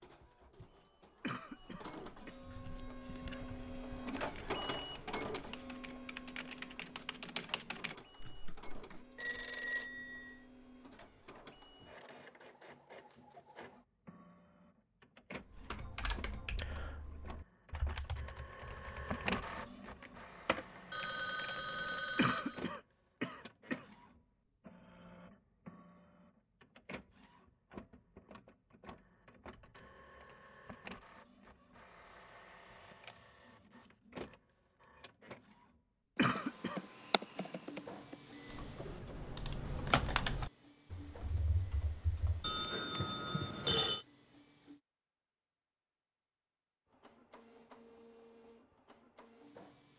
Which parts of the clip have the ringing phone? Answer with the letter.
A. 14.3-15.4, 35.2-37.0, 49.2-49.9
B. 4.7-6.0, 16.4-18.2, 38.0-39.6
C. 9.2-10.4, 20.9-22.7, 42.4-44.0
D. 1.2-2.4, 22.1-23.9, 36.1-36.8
C.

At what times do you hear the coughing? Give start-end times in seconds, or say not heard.
1.2-2.4, 22.1-23.9, 36.1-36.8.